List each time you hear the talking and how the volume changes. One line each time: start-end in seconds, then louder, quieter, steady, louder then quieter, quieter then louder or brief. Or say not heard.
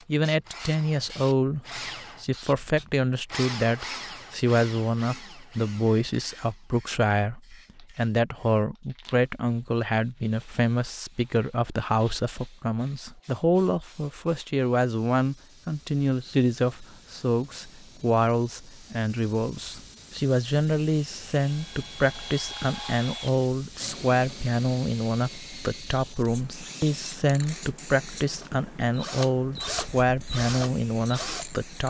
0.1-31.8 steady.